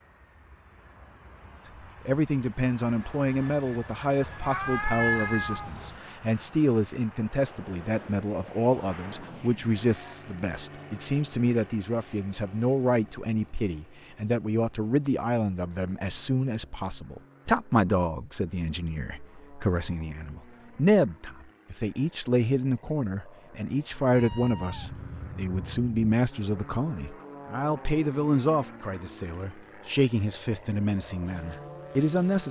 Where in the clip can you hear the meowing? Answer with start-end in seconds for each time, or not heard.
4.4-5.9, 24.1-26.1.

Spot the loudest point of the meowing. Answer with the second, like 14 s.
5 s.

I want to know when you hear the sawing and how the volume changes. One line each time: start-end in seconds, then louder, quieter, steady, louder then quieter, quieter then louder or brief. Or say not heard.
not heard.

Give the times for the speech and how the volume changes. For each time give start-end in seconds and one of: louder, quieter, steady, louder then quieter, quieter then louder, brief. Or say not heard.
2.0-32.4 steady.